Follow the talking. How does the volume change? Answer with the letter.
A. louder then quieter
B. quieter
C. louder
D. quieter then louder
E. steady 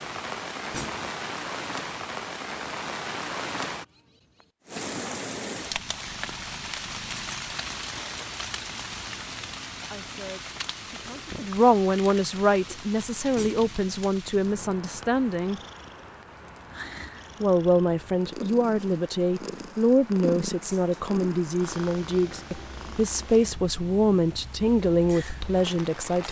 E.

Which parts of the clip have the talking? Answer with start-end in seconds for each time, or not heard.
9.9-15.6, 17.4-26.2.